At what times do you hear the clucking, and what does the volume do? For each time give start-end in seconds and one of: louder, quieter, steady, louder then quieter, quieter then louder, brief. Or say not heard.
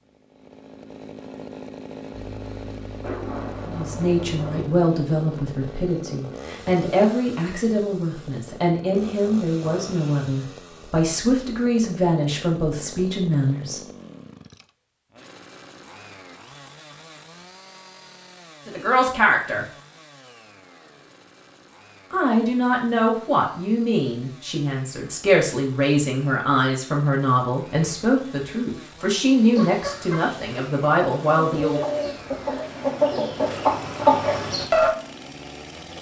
29.6-34.9 louder.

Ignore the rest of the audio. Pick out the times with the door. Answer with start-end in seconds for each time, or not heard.
not heard.